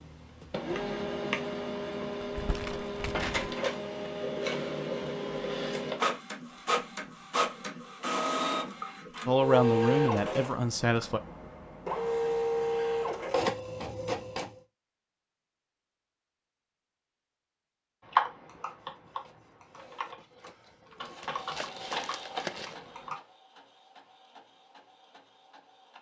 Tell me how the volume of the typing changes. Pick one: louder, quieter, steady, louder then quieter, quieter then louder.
quieter then louder.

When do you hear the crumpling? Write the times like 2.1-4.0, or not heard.
2.2-3.4, 21.2-22.8.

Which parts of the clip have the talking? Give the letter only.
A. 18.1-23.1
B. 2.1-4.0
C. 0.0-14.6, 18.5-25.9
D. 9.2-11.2
D.